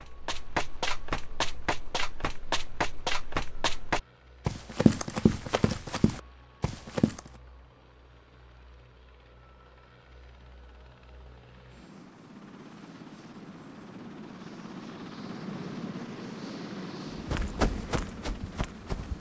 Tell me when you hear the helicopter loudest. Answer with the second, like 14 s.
16 s.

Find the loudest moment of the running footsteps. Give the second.
5 s.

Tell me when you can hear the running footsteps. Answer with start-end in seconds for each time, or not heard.
0.0-7.2, 17.1-19.1.